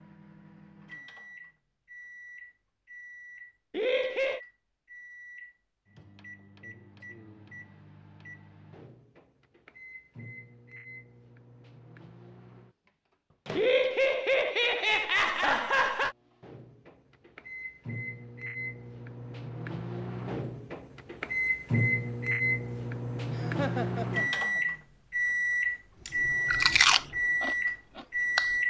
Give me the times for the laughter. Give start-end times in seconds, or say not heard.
3.7-4.4, 13.6-16.1, 23.3-24.6.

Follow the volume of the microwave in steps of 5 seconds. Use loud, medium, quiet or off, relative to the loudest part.
quiet, quiet, quiet, quiet, loud, loud.